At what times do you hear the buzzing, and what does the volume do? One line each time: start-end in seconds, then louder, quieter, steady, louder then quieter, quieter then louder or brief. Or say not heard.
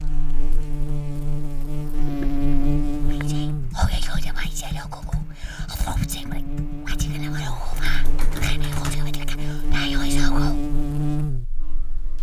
0.0-12.1 quieter then louder.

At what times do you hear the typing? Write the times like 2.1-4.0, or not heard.
1.9-8.9.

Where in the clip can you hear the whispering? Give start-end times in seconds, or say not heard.
3.0-10.7.